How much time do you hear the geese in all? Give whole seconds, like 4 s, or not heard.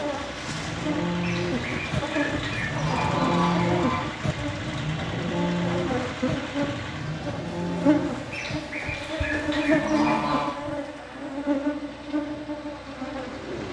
5 s.